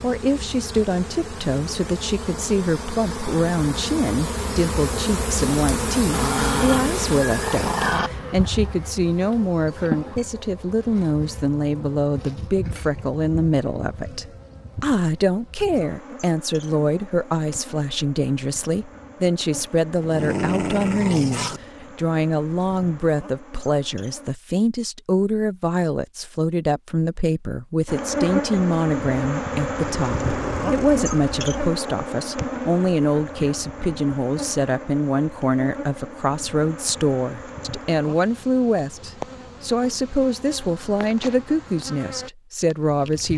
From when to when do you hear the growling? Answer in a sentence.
You can hear the growling from 6.1 to 8.1 s, from 19.6 to 21.6 s and from 29.8 to 31.5 s.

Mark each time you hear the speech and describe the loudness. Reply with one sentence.
You can hear the speech from 0.0 to 43.3 s, at a steady volume.